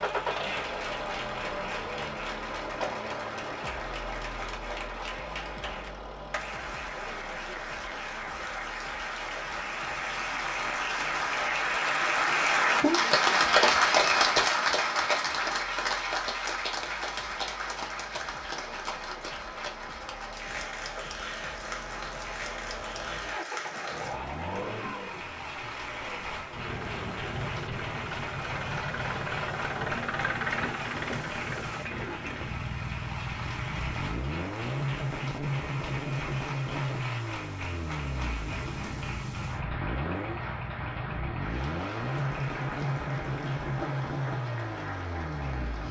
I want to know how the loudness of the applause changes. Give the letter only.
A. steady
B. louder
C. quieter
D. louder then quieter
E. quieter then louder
D.